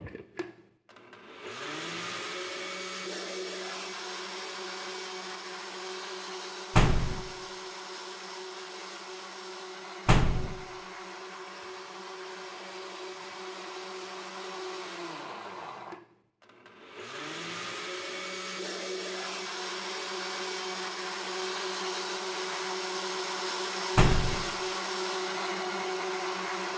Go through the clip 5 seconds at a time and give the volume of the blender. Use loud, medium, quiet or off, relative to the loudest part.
medium, medium, medium, medium, loud, loud.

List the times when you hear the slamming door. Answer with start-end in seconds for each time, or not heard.
6.8-7.2, 10.1-10.6, 23.9-24.4.